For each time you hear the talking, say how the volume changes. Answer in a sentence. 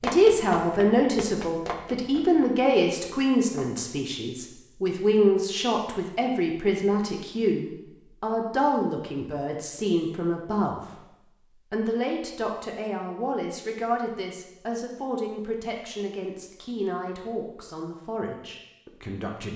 The talking can be heard from 0.0 to 19.5 s, getting quieter.